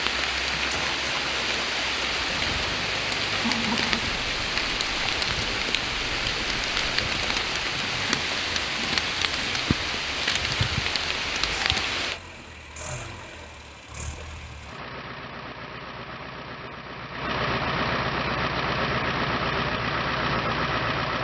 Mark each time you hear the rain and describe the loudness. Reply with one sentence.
The rain can be heard from 0.0 to 12.2 s, at a steady volume.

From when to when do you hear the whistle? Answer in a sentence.
The whistle can't be heard in this clip.